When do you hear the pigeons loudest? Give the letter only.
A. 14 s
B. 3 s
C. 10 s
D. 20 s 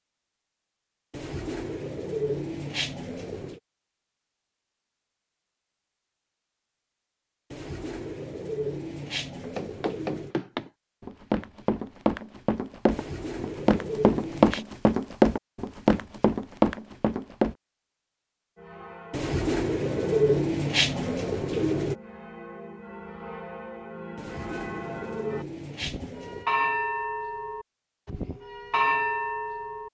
D.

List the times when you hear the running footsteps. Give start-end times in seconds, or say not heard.
9.4-17.6.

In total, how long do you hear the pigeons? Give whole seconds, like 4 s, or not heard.
12 s.